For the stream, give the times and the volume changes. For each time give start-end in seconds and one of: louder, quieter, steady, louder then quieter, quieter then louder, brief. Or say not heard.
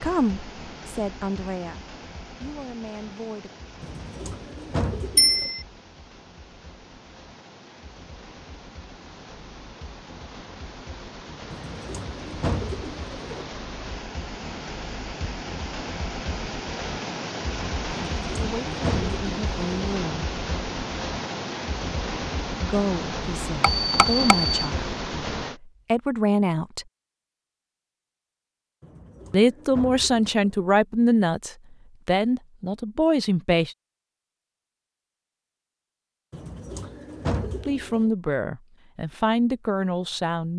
0.0-25.6 louder.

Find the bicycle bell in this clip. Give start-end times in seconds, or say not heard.
5.2-5.7, 23.6-24.7.